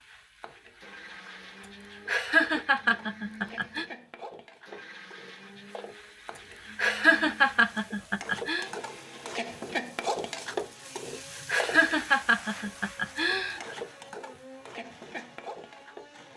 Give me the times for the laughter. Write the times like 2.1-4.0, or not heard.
2.0-3.9, 6.8-8.7, 11.4-13.8.